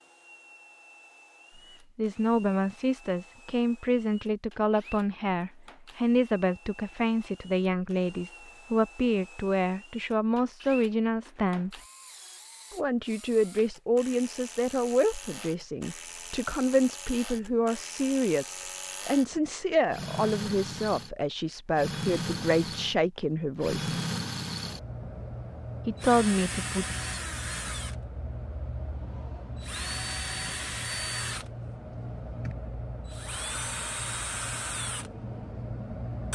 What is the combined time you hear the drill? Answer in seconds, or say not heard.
36 s.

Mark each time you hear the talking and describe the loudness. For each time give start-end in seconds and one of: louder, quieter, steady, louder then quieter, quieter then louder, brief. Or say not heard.
1.9-11.8 steady
12.7-23.9 steady
25.9-26.9 brief.